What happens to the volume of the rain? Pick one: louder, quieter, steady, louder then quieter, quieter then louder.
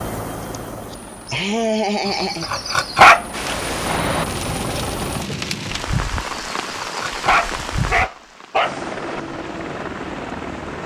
quieter.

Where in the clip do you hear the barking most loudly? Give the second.
3 s.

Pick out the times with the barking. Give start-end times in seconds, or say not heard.
2.0-3.2, 6.3-9.2.